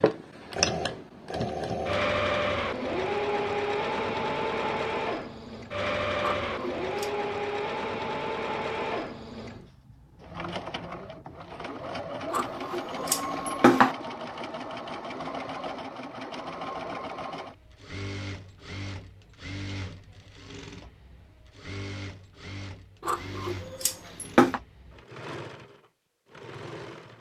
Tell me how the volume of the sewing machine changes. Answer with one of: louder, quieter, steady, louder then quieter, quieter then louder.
quieter.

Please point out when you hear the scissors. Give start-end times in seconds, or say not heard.
6.2-7.1, 12.3-13.9, 23.1-24.6.